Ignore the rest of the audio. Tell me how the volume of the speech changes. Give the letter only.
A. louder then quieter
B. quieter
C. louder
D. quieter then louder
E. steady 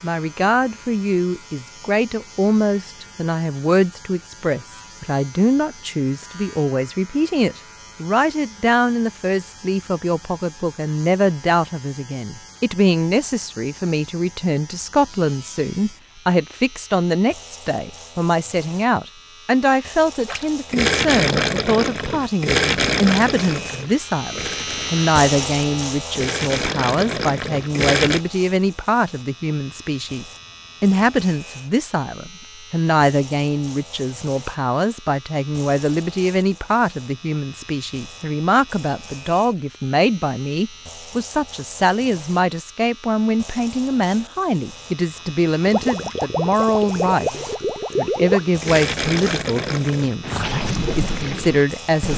E.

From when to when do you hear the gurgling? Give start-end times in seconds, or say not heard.
20.2-28.2, 45.6-52.1.